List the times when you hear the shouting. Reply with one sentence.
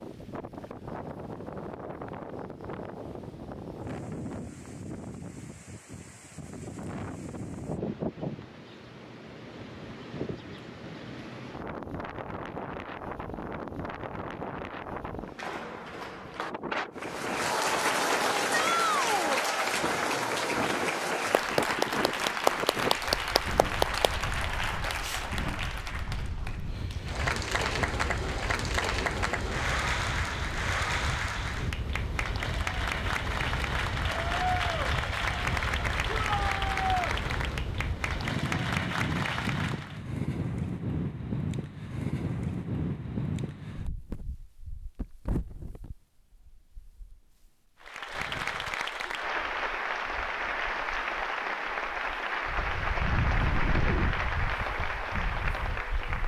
The shouting can be heard from 18.5 to 19.4 s and from 36.1 to 37.0 s.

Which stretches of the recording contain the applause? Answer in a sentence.
You can hear the applause from 16.9 to 40.0 s and from 47.8 to 56.2 s.